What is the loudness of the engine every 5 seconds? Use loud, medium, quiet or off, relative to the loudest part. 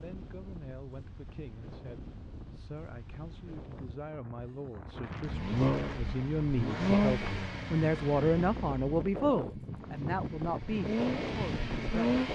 off, loud, loud.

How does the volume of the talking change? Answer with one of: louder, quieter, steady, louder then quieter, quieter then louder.
louder then quieter.